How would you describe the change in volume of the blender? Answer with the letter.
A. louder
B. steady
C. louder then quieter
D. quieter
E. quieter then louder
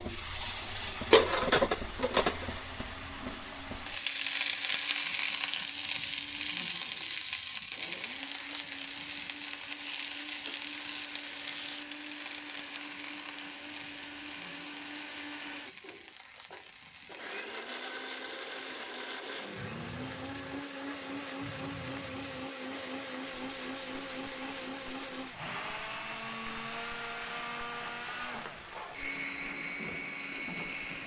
A.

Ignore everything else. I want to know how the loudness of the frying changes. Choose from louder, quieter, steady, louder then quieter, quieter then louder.
quieter.